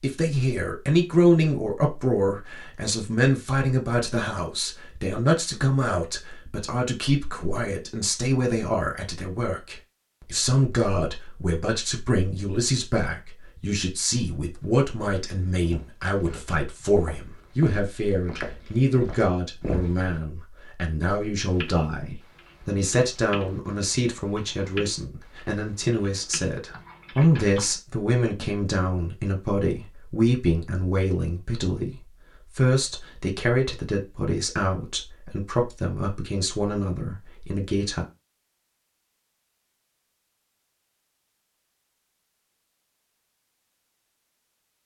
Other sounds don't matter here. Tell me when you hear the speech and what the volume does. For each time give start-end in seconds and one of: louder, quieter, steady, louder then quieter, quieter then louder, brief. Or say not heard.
0.0-38.0 steady.